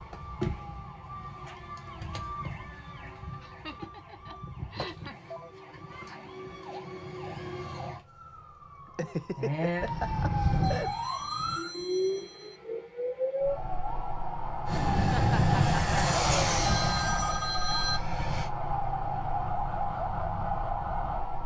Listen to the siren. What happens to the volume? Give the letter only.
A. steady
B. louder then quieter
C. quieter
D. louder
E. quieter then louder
D.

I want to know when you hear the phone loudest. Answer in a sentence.
The loudest moment of the phone is at 18 seconds.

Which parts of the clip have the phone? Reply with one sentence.
The phone can be heard from 4.8 to 5.5 s, from 10.6 to 12.6 s and from 16.6 to 18.1 s.